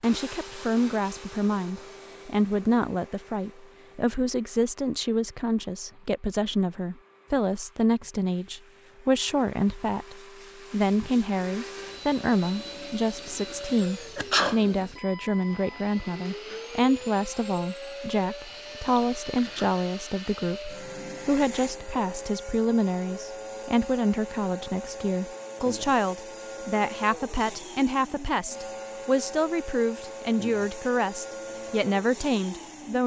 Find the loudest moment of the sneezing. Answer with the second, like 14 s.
14 s.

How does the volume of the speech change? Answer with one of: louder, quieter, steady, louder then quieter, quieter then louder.
steady.